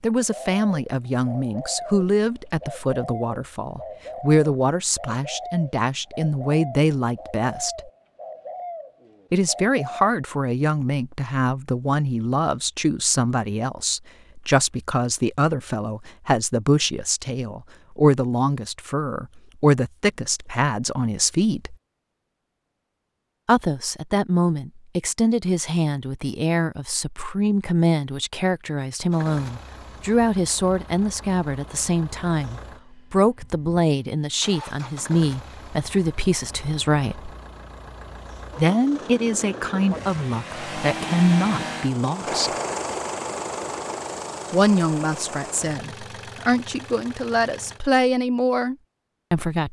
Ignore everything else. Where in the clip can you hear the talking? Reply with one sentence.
You can hear the talking from 0.0 to 7.9 s, from 9.3 to 21.8 s, from 23.4 to 37.3 s, from 38.5 to 42.5 s and from 44.5 to 49.6 s.